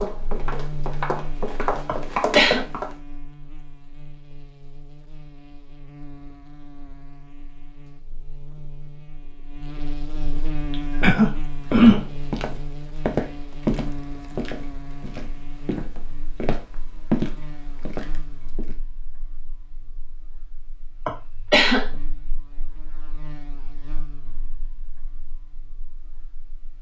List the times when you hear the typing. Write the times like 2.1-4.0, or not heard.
not heard.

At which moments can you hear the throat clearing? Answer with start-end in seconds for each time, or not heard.
1.9-2.6, 10.7-12.1, 21.1-21.9.